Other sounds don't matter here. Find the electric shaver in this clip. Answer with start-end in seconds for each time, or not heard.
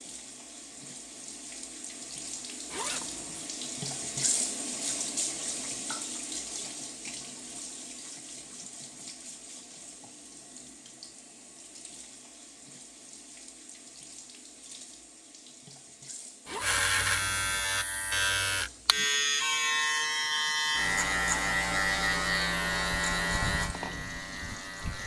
16.6-25.0.